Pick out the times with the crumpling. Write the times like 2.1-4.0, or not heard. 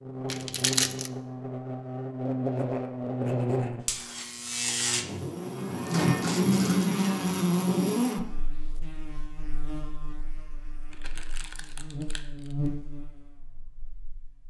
0.3-1.1, 5.8-6.9, 10.9-12.6.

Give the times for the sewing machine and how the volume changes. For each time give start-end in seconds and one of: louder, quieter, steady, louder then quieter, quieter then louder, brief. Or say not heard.
not heard.